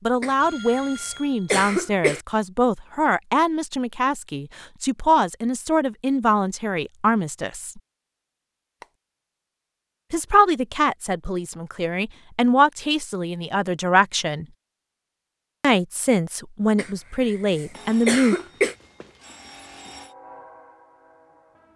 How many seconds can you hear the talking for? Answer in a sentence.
The talking can be heard for 15 seconds in total.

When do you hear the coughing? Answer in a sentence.
You can hear the coughing from 0.2 to 2.2 s and from 16.8 to 18.8 s.